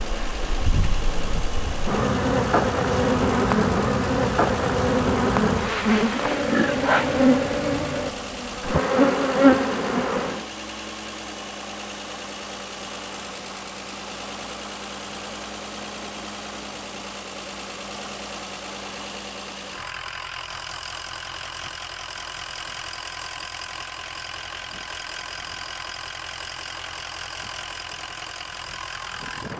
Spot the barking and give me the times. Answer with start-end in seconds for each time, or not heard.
not heard.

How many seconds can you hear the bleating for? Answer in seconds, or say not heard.
not heard.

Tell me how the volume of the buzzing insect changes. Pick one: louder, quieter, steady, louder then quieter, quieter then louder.
louder.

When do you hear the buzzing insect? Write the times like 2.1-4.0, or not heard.
0.0-10.4.